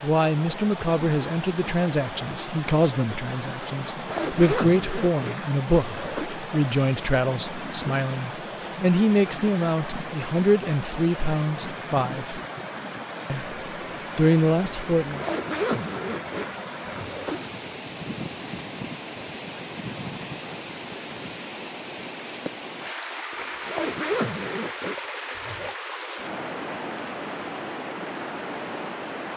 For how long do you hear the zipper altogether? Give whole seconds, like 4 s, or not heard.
7 s.